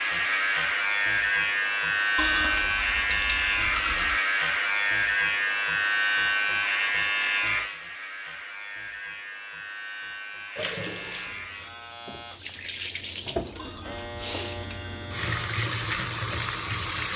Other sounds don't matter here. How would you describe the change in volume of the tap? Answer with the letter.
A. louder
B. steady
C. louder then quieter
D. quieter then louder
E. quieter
A.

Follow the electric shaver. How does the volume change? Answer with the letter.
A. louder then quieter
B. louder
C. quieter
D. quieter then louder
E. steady
C.